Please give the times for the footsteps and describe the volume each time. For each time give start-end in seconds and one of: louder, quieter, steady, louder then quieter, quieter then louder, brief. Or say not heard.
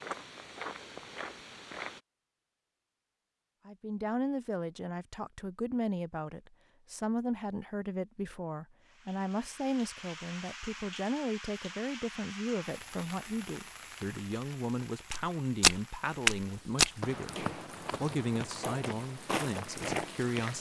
0.0-2.0 brief
15.1-20.5 quieter then louder.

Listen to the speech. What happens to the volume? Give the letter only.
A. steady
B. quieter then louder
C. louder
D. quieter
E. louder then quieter
A.